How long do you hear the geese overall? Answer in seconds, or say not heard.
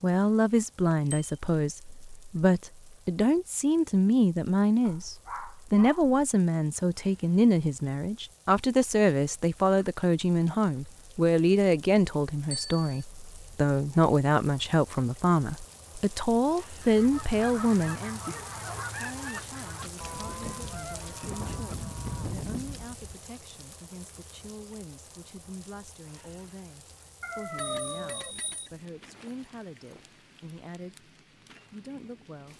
6 s.